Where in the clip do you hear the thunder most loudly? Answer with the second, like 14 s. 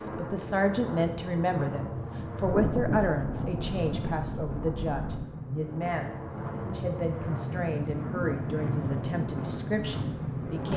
3 s.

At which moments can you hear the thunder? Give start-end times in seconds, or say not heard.
2.4-5.2.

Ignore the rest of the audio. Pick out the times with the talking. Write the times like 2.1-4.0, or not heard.
0.0-10.7.